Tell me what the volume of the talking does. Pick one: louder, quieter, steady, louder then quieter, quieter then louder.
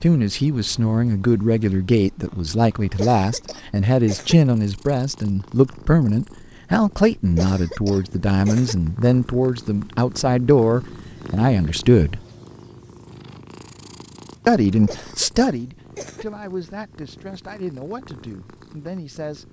quieter.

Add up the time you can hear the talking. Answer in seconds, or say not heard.
17 s.